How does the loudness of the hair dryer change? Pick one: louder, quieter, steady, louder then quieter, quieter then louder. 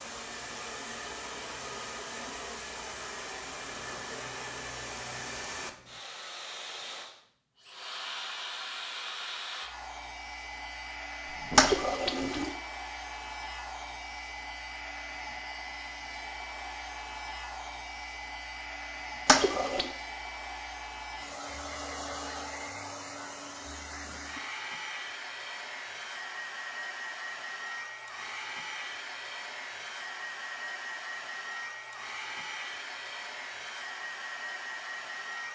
steady.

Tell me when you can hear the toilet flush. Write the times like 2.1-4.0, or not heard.
11.6-12.5, 19.2-19.9.